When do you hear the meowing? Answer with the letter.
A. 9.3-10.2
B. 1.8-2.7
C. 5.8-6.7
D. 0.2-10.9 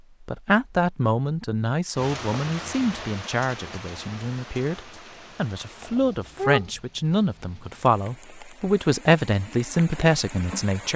C.